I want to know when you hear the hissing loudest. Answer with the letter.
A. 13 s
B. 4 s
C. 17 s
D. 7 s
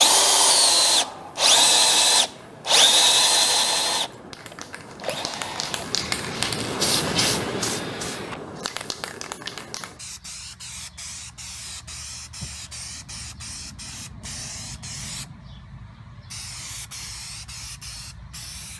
D.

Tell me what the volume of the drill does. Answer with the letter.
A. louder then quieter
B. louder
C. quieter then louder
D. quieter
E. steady
D.